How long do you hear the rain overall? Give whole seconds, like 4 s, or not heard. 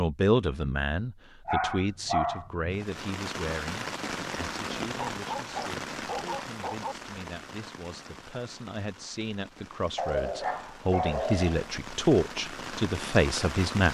11 s.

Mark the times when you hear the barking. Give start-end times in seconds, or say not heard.
1.4-2.7, 5.2-7.0, 9.9-11.7.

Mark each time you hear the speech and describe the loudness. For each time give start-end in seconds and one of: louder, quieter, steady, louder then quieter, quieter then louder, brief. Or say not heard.
0.0-13.8 quieter then louder.